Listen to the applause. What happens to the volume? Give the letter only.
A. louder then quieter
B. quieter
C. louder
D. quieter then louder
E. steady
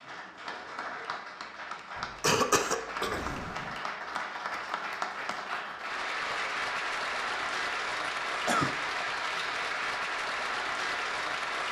C.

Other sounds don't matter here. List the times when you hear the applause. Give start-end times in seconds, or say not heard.
0.0-11.6.